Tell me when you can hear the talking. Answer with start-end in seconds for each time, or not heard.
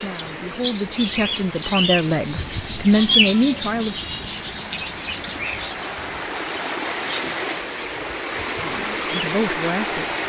0.0-4.0, 8.6-10.1.